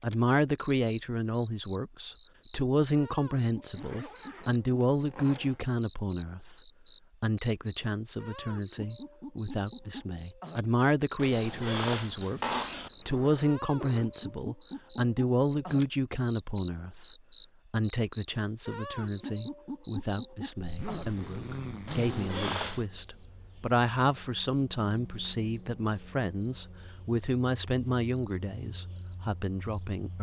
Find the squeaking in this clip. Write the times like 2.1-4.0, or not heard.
11.2-12.9, 21.9-22.9.